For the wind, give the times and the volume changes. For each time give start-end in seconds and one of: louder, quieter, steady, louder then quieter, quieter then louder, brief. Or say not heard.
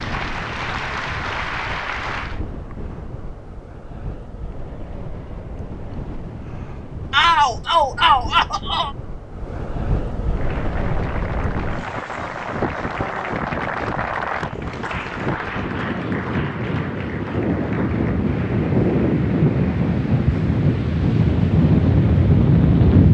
0.0-23.0 louder.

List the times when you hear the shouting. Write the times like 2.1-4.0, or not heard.
7.1-8.9.